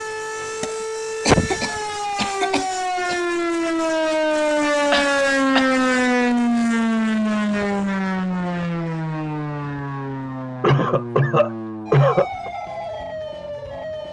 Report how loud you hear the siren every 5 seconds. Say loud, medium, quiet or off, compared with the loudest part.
loud, loud, medium.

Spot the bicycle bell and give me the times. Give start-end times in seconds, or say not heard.
not heard.